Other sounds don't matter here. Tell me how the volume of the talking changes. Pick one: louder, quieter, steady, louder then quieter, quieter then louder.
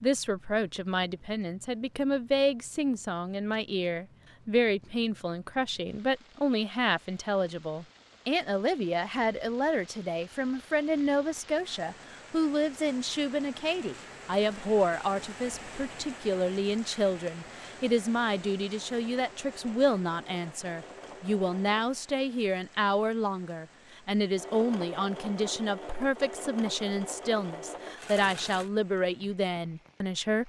steady.